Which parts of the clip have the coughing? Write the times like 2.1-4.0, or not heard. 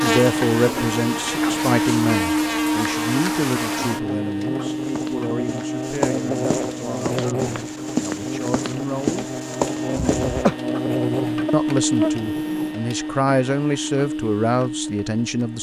9.9-10.6.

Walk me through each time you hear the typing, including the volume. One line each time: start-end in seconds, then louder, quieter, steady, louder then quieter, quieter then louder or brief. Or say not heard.
not heard.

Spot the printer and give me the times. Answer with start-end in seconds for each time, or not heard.
0.0-15.5.